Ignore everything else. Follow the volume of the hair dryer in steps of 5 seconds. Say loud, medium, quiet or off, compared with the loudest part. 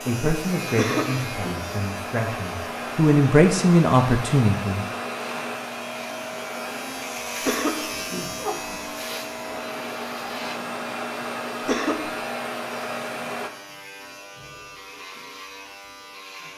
loud, loud, loud, off.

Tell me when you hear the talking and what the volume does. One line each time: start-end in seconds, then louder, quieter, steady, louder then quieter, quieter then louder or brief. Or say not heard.
0.1-4.8 quieter then louder.